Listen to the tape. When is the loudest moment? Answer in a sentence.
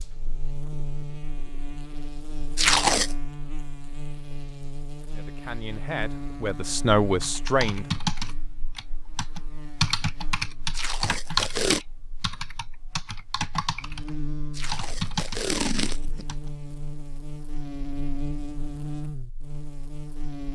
The loudest moment of the tape is at 3 seconds.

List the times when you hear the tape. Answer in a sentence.
The tape can be heard from 2.5 to 3.1 s, from 10.8 to 11.8 s and from 14.5 to 16.2 s.